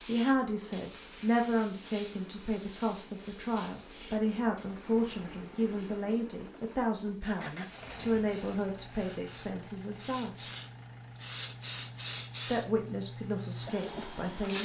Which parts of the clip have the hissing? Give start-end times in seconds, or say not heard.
0.0-14.6.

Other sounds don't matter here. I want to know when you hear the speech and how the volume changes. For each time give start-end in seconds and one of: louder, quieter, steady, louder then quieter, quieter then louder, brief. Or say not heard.
0.1-10.3 steady
12.4-14.6 brief.